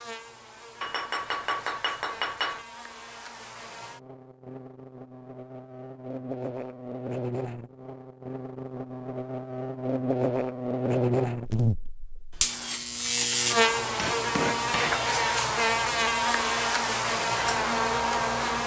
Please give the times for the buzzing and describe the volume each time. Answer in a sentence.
You can hear the buzzing from 0.0 to 18.6 s, getting louder.